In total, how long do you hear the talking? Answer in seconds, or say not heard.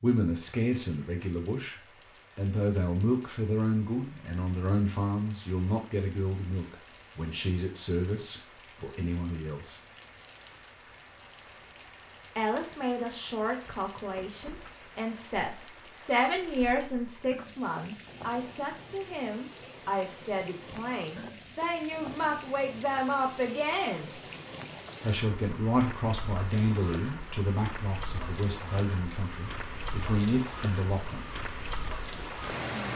28 s.